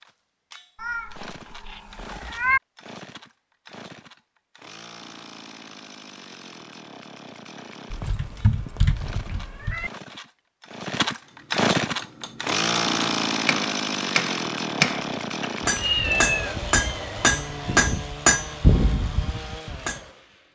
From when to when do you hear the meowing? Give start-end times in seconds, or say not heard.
0.8-2.6, 7.9-9.9, 15.8-17.8.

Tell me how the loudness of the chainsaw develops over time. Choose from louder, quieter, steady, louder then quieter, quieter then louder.
louder then quieter.